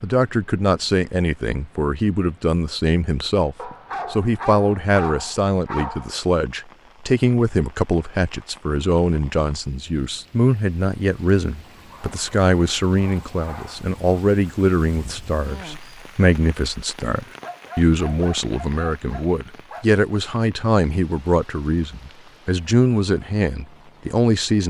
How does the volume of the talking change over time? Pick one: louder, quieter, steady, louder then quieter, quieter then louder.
steady.